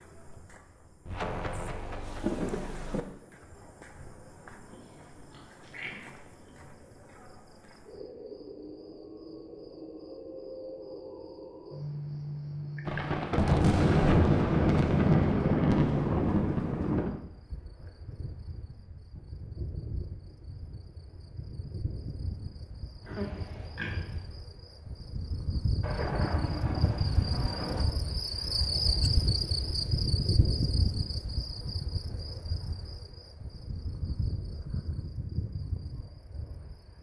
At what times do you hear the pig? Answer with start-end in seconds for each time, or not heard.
4.7-6.5, 23.1-24.2.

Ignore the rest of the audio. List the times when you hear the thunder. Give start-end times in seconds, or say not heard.
1.1-3.0, 12.8-17.2, 25.8-27.9.